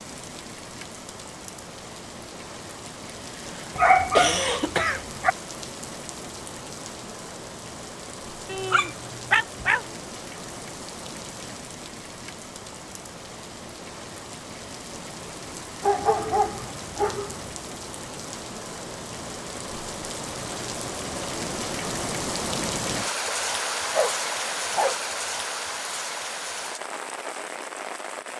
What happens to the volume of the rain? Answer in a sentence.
The loudness of the rain goes up.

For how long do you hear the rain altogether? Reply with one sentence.
The rain can be heard for 28 seconds in total.